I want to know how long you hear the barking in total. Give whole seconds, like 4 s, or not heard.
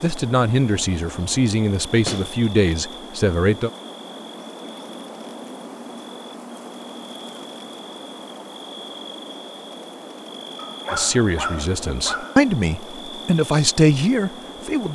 2 s.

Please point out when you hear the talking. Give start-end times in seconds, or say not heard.
0.0-3.7, 10.9-14.8.